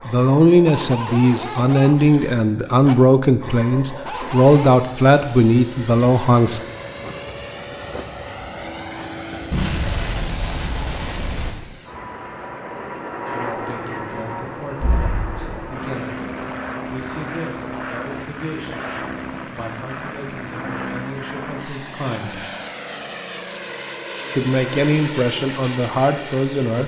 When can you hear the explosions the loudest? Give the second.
10 s.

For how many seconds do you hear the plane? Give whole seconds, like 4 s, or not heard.
23 s.